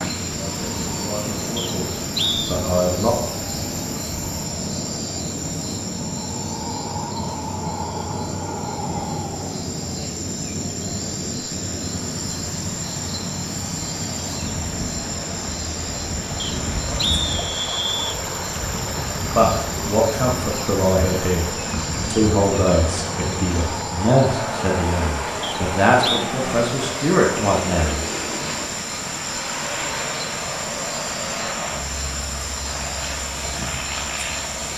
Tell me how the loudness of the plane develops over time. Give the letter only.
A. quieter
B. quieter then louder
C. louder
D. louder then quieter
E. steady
E.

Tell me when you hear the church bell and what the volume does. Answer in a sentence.
You can't hear the church bell here.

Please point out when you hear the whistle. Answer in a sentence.
You can hear the whistle from 1.6 to 2.5 s, from 16.4 to 18.2 s and from 25.4 to 26.2 s.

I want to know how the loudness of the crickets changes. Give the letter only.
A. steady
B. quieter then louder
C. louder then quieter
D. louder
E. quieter
A.